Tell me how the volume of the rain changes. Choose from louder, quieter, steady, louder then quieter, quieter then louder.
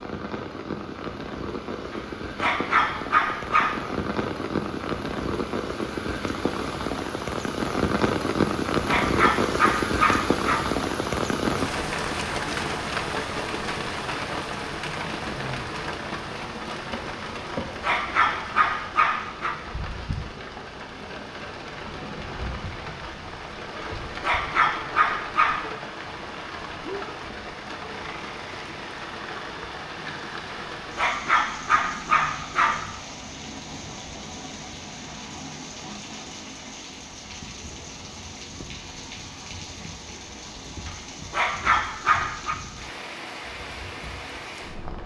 quieter.